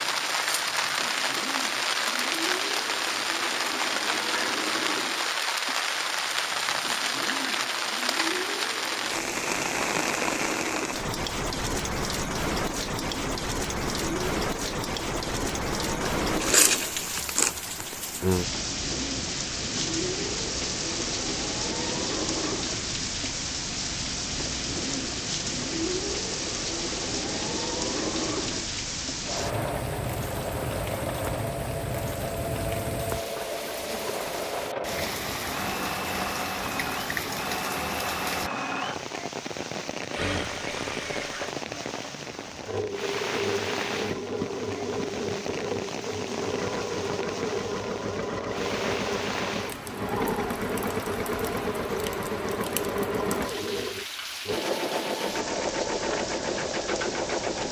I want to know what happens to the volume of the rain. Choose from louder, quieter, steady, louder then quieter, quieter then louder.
quieter.